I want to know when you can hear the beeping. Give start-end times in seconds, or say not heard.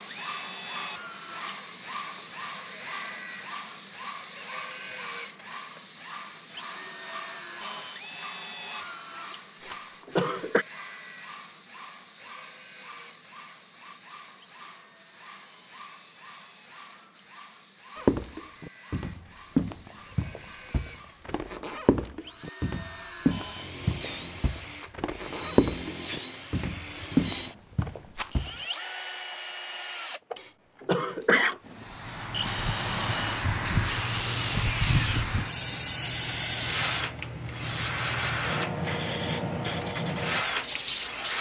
not heard.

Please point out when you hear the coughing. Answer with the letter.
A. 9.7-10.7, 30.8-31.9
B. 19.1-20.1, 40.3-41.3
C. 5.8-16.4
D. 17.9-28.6
A.